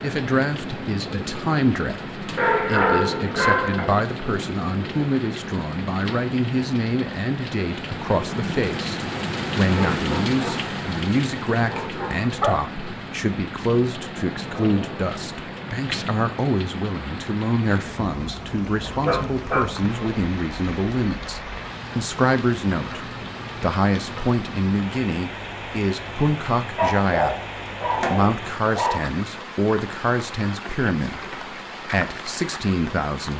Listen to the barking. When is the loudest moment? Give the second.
3 s.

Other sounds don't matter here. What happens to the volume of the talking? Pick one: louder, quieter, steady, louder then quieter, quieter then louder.
steady.